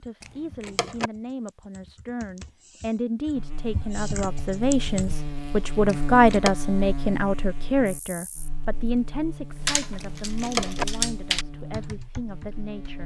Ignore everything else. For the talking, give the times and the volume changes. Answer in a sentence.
The talking can be heard from 0.0 to 13.0 s, getting louder then quieter.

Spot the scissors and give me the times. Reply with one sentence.
You can hear the scissors from 0.2 to 1.1 s, from 5.8 to 6.5 s and from 10.0 to 10.8 s.